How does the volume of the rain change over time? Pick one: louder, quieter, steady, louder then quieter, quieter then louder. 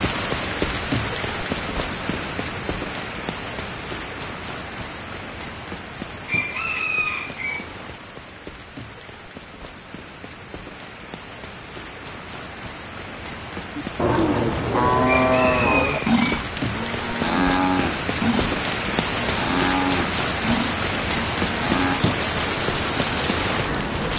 quieter then louder.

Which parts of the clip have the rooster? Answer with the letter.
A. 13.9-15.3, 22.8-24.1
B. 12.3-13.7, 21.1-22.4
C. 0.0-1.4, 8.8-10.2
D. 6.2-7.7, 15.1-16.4
D.